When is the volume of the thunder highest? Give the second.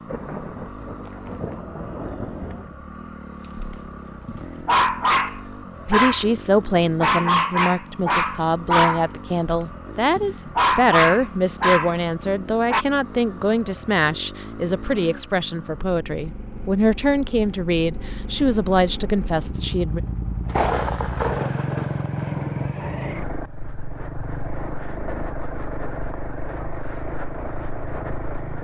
21 s.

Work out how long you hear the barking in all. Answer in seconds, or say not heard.
9 s.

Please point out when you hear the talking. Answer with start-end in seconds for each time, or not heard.
5.8-20.0.